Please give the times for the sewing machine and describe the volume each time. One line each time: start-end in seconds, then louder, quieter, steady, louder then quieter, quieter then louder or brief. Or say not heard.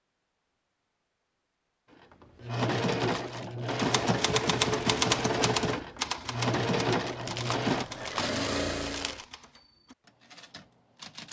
2.2-9.2 steady.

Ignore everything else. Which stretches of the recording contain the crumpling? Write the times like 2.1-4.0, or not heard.
2.8-3.9, 7.0-9.2.